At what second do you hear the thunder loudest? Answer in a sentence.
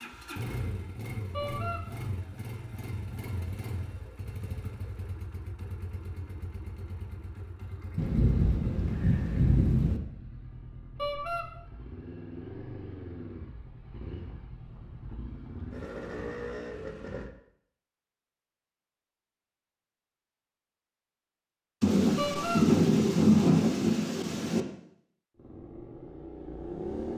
The loudest moment of the thunder is at 23 seconds.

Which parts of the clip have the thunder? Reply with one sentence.
You can hear the thunder from 8.0 to 10.0 s and from 21.8 to 24.6 s.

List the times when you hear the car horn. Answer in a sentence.
The car horn can be heard from 1.3 to 1.8 s, from 10.9 to 11.4 s and from 22.1 to 22.6 s.